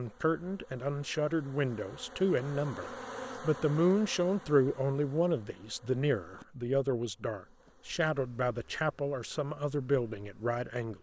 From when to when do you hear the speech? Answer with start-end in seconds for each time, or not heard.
0.0-10.9.